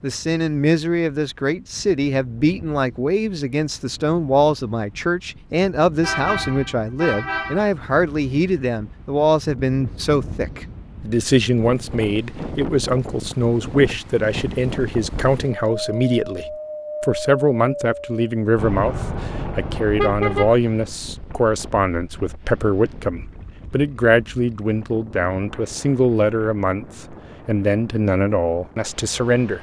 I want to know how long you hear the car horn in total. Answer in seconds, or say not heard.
4 s.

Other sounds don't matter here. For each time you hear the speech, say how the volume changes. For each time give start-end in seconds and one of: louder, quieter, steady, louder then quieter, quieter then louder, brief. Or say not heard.
0.0-29.5 steady.